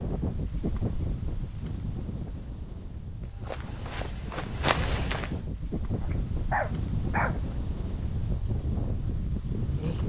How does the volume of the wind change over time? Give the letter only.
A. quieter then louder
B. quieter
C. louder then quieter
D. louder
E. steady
A.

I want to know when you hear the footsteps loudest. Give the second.
5 s.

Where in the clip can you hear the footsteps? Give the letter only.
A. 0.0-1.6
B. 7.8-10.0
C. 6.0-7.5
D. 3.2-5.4
D.